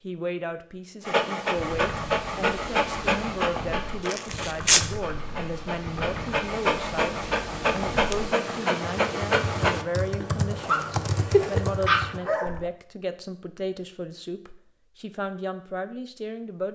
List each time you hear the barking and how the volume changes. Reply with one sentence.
You can hear the barking from 1.1 to 12.7 s, getting quieter then louder.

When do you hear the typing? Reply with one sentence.
You can hear the typing from 1.5 to 12.7 s.